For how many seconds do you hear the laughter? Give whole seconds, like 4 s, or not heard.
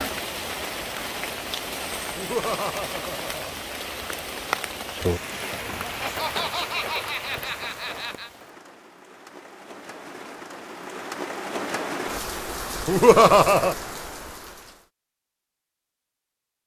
5 s.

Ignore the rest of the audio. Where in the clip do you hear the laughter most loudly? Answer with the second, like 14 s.
13 s.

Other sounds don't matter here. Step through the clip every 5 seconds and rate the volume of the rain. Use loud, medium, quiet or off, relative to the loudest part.
loud, loud, loud, off.